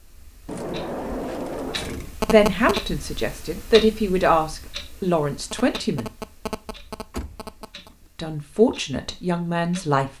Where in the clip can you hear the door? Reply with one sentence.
The door can be heard from 0.5 to 2.1 s and from 7.1 to 8.0 s.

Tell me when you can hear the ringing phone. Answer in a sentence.
You can hear the ringing phone from 2.0 to 2.8 s and from 5.3 to 7.9 s.